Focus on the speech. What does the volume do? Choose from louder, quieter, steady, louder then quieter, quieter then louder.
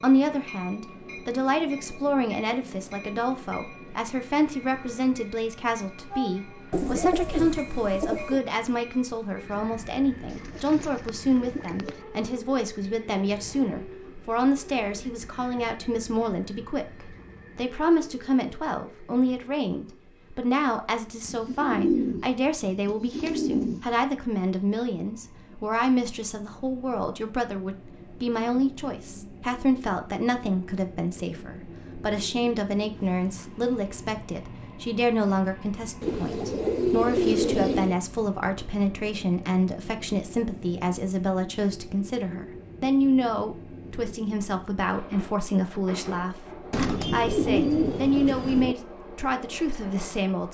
steady.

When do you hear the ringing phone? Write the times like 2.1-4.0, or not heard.
not heard.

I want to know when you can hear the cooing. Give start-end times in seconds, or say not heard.
6.7-8.4, 10.3-12.0, 21.2-23.9, 36.0-38.0, 46.7-48.8.